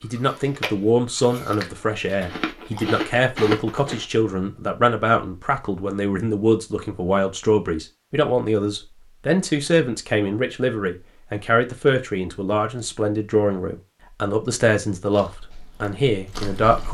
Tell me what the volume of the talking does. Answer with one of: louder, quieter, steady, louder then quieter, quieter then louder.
steady.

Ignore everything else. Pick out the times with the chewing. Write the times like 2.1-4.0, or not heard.
0.0-4.0, 15.1-16.8.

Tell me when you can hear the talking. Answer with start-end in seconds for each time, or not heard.
0.0-16.8.